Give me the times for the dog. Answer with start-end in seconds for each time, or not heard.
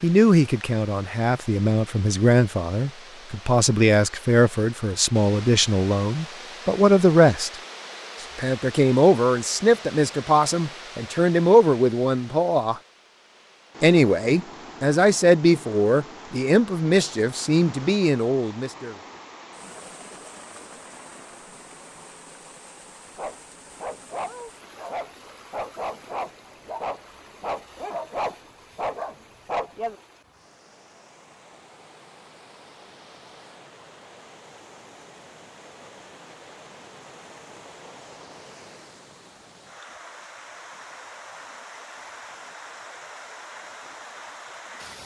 23.1-29.9.